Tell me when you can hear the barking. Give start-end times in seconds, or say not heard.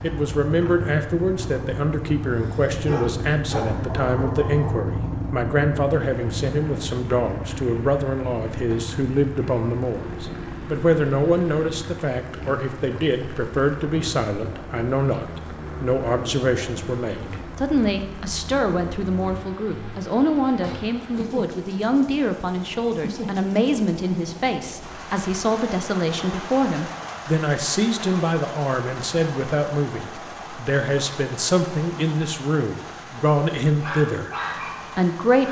2.4-4.9, 33.8-35.4.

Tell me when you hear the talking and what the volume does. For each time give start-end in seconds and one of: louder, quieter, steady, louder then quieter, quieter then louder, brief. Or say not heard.
0.0-34.4 steady
35.0-35.4 brief.